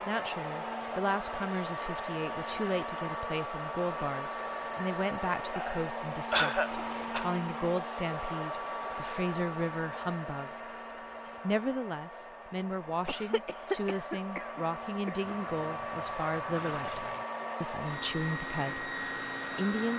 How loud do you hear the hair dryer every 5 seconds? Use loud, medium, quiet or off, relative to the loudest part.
loud, loud, medium, loud.